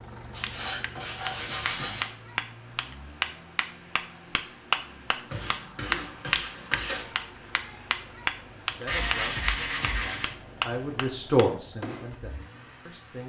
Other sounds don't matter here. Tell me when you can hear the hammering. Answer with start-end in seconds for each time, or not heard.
0.2-12.2.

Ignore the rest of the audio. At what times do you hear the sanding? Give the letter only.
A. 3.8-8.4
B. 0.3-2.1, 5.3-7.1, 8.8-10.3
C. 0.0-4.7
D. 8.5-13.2
B.